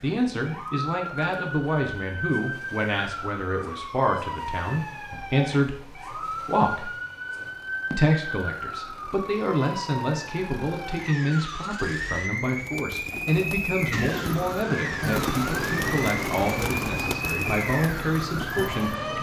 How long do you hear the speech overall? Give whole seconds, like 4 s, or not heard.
18 s.